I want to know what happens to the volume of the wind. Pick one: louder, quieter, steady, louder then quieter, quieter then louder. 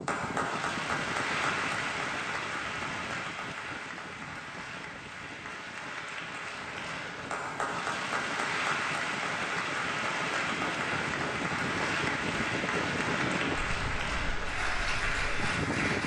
quieter then louder.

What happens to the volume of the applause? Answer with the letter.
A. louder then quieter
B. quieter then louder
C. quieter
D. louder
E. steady
B.